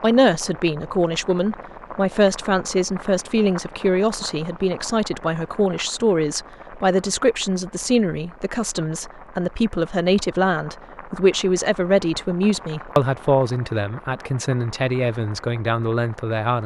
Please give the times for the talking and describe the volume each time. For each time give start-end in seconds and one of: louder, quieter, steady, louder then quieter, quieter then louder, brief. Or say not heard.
0.0-16.6 steady.